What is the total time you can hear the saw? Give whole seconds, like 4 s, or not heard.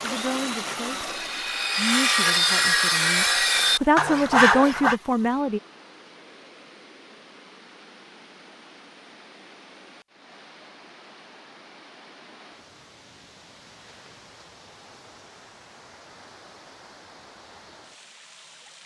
5 s.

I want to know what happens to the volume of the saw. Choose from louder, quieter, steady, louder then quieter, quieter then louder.
louder.